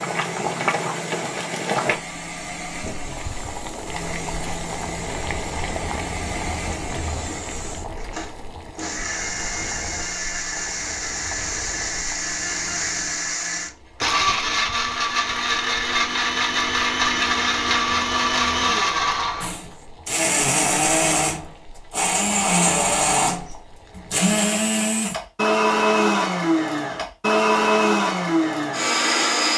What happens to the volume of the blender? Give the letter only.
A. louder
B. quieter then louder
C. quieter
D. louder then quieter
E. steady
A.